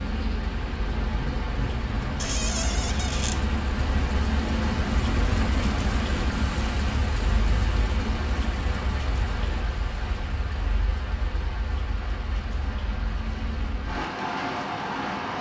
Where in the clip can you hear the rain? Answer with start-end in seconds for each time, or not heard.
0.0-15.3.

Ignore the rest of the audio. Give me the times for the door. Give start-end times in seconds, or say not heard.
2.1-3.4.